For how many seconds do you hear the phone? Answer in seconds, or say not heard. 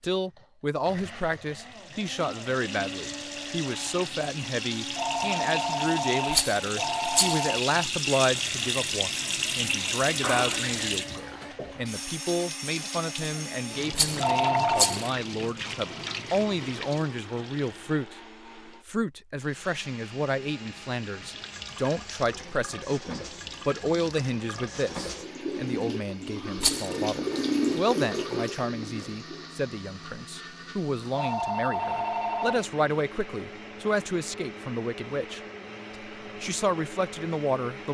5 s.